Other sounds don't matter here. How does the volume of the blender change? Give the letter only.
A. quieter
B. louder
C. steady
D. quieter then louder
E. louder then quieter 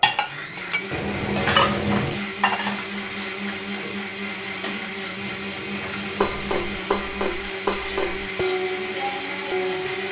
C.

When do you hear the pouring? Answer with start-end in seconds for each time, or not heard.
0.9-2.2, 5.2-6.8.